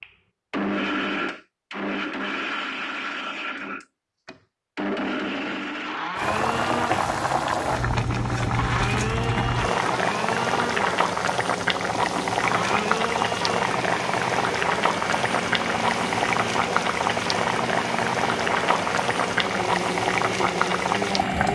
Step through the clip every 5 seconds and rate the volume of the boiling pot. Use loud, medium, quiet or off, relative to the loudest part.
off, loud, loud, loud, loud.